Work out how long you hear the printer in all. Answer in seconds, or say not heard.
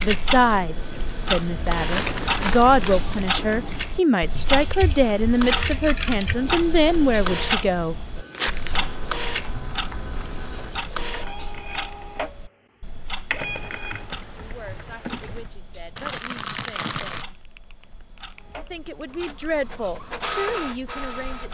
17 s.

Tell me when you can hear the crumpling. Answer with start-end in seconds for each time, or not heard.
1.6-3.3, 8.3-8.8, 15.9-17.2.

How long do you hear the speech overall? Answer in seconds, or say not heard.
14 s.